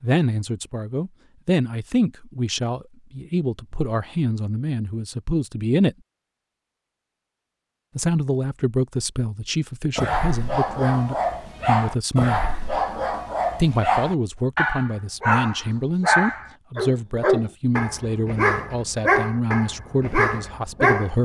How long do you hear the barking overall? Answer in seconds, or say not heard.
11 s.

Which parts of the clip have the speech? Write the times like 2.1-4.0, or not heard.
0.0-6.0, 8.0-12.4, 13.6-21.2.